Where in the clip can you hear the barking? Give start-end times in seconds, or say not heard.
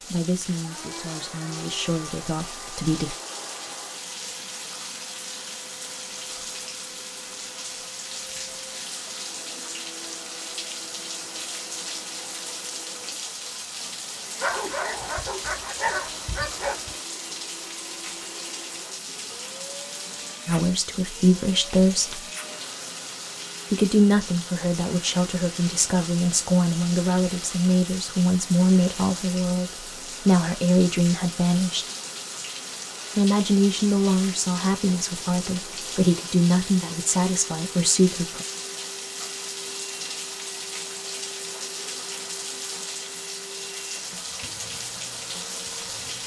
14.4-16.9.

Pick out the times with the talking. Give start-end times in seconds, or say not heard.
0.1-3.1, 20.4-22.3, 23.7-31.9, 33.1-38.5.